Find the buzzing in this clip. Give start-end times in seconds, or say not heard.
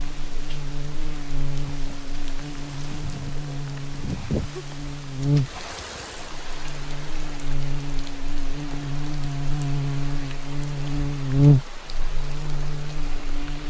0.0-13.6.